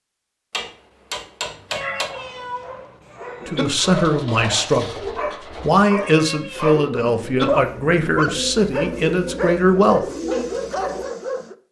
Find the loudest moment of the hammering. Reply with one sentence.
The volume of the hammering peaks at 2 seconds.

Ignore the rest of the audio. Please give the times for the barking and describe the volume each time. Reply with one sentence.
You can hear the barking from 1.6 to 11.6 s, getting louder.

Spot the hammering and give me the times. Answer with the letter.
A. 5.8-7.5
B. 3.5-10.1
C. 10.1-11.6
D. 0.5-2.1
D.